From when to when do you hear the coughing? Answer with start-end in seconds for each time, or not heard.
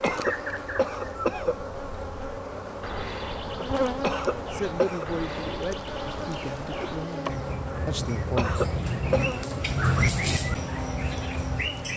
0.0-1.6, 4.0-5.0, 8.3-9.3.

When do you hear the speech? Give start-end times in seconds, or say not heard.
4.5-8.6.